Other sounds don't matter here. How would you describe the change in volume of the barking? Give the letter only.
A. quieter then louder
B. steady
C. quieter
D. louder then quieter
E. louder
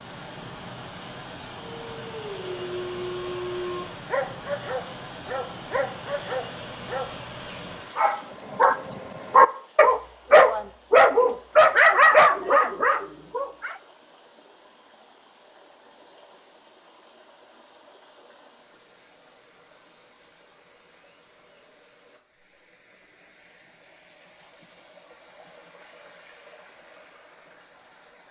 E.